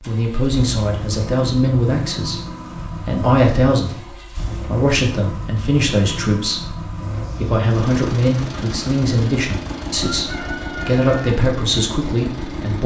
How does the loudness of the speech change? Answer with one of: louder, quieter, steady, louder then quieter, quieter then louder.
steady.